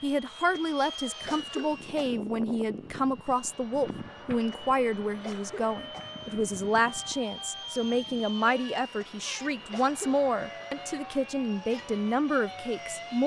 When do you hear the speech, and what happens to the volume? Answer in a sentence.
The speech can be heard from 0.0 to 13.2 s, at a steady volume.